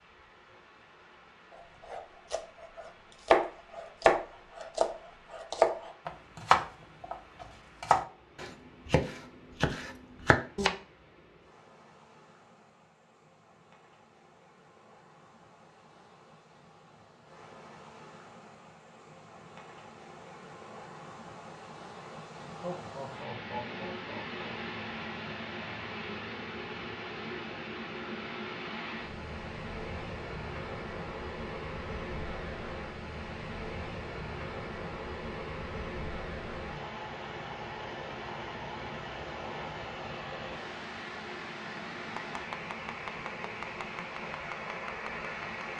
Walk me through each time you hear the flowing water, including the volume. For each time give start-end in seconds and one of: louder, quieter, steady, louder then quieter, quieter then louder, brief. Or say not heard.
0.0-45.7 louder.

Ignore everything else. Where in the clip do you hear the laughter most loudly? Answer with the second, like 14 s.
23 s.